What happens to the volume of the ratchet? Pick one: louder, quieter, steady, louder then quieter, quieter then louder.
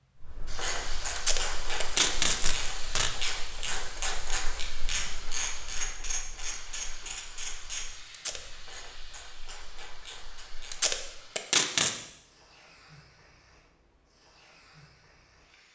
quieter.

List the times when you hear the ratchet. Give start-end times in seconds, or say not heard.
0.1-11.0.